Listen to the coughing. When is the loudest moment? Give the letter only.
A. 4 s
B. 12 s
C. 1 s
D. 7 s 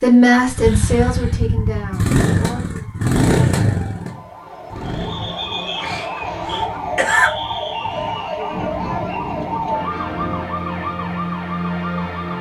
D.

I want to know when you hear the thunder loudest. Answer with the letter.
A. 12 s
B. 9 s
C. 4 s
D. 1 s
B.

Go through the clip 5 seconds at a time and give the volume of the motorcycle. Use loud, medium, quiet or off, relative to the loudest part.
loud, quiet, off.